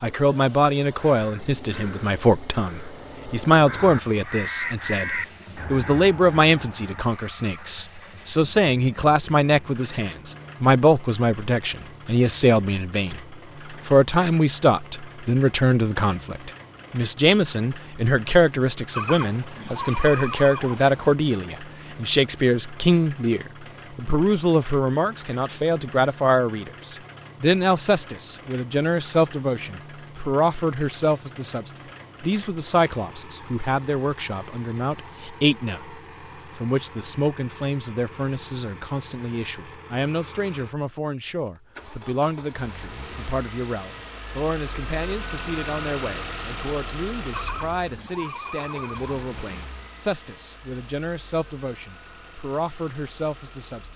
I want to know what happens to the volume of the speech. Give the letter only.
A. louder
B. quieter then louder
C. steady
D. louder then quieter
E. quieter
E.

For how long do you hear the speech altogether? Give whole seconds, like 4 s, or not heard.
54 s.